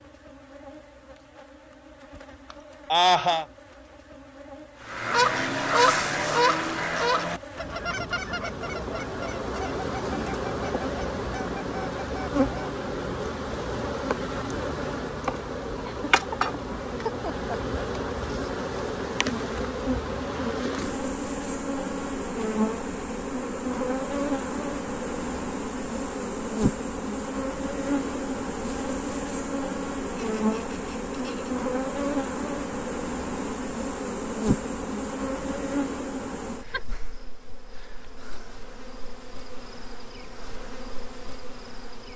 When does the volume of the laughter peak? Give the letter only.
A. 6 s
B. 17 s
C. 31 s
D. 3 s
D.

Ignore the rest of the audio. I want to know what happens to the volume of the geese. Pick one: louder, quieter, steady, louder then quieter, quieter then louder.
quieter.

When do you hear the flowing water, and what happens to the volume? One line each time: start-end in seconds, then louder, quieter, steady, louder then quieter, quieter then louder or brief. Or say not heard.
not heard.